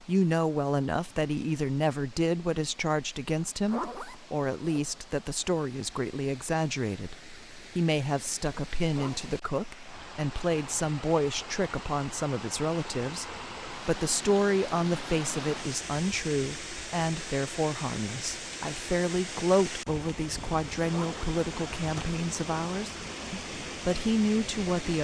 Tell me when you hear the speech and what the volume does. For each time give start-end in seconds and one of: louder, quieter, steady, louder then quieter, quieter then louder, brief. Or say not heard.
0.1-24.9 steady.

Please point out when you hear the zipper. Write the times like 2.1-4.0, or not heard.
3.4-4.8, 8.9-9.3, 20.9-21.3.